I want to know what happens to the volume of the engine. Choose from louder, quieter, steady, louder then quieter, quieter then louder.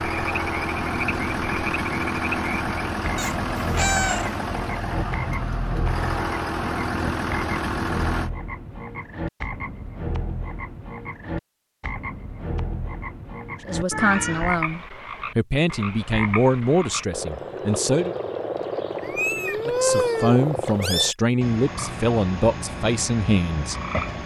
steady.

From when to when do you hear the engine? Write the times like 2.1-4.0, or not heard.
0.0-8.3.